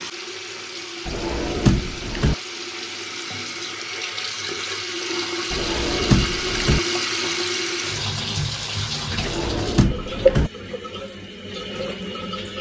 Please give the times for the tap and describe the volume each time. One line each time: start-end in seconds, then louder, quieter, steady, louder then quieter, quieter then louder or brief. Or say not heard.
0.0-12.5 louder.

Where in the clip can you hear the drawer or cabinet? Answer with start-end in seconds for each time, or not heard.
1.1-2.4, 5.5-6.8, 9.2-10.5.